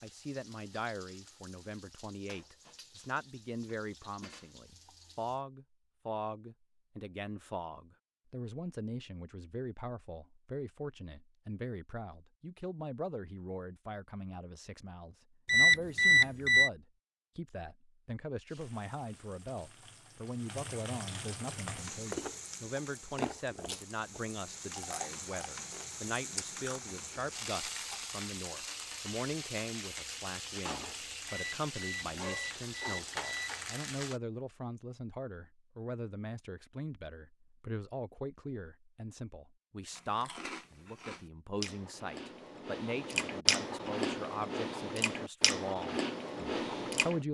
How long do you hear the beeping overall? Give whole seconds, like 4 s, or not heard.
4 s.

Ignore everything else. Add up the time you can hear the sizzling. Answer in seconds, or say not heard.
21 s.